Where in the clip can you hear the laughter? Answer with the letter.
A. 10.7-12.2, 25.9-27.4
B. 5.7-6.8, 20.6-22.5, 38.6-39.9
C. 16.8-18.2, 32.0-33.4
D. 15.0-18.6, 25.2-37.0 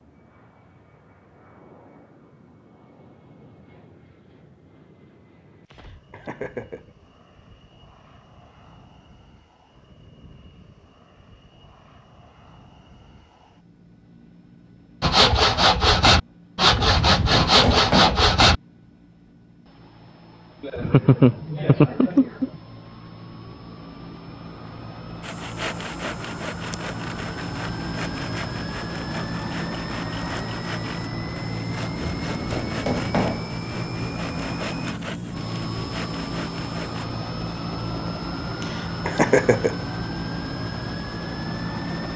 B.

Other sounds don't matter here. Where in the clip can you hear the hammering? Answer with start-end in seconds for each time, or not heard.
16.8-18.2, 32.0-33.4.